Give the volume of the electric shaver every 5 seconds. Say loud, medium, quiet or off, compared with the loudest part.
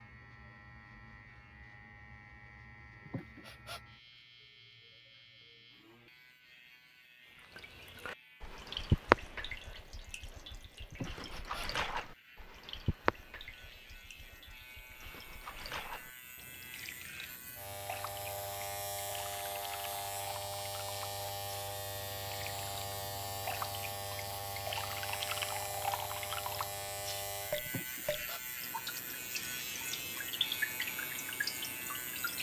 quiet, quiet, quiet, loud, loud, loud, loud.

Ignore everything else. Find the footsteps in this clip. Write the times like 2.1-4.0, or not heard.
not heard.